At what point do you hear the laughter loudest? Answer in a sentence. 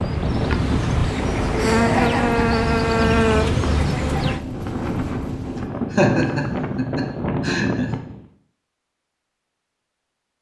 The volume of the laughter peaks at 6 seconds.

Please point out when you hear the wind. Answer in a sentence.
You can hear the wind from 0.0 to 8.2 s.